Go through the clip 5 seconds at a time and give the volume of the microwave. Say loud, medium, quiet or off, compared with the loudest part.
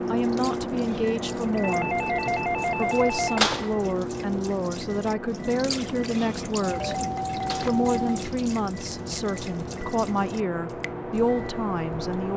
loud, medium, loud.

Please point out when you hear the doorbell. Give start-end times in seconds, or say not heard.
1.6-3.4, 6.6-8.1.